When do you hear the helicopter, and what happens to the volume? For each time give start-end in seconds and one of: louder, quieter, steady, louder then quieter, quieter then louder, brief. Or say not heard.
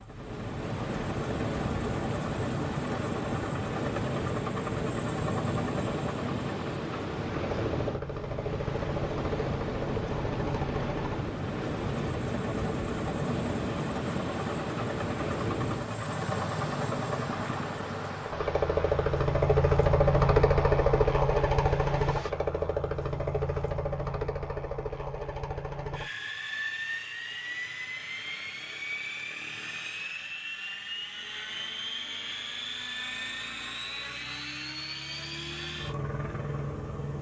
0.0-37.1 louder then quieter.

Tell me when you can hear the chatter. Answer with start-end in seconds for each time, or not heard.
not heard.